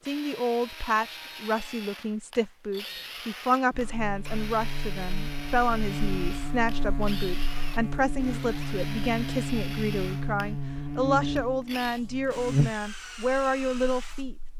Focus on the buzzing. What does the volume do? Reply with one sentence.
The loudness of the buzzing goes up.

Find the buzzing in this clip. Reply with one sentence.
You can hear the buzzing from 3.7 to 14.5 s.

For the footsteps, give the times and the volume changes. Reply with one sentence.
You can't hear the footsteps here.